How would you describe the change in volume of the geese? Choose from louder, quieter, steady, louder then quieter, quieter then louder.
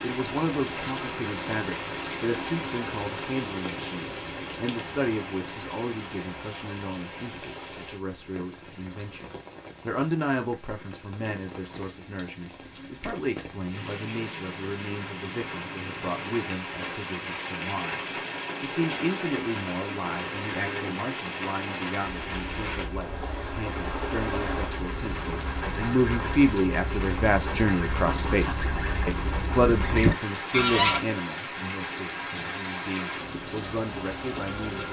louder.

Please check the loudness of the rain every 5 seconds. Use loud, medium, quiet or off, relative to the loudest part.
loud, medium, medium, loud, loud, loud, loud.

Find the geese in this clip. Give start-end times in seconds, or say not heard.
22.0-31.0.